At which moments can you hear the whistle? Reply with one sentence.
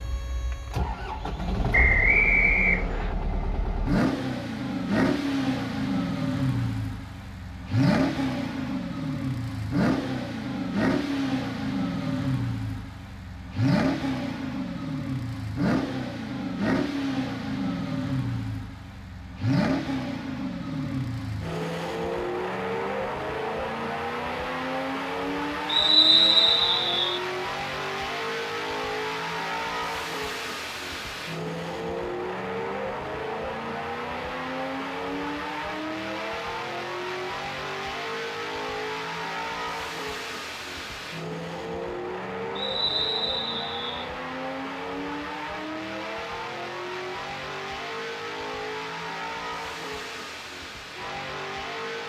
You can hear the whistle from 1.7 to 3.1 s, from 25.6 to 27.2 s and from 42.5 to 44.0 s.